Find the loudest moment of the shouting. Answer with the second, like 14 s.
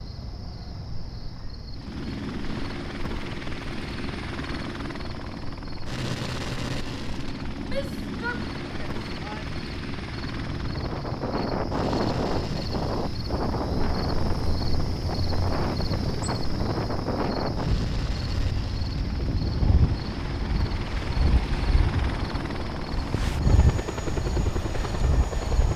8 s.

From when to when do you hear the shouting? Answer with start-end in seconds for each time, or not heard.
7.7-9.5.